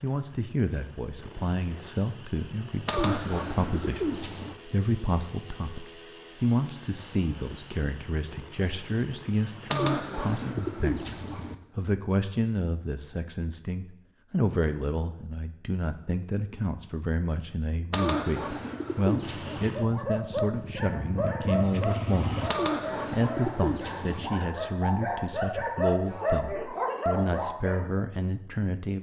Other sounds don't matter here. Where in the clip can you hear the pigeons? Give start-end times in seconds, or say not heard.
2.9-4.5, 9.7-11.6, 17.9-19.8, 22.4-24.4.